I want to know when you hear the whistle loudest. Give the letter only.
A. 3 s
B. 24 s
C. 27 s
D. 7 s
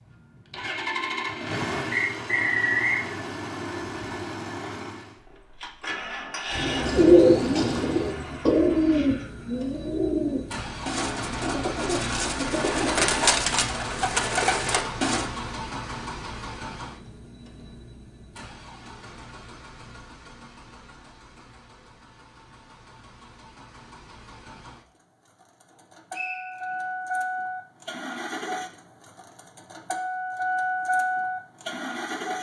A.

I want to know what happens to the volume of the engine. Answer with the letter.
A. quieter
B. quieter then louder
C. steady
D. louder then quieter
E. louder
B.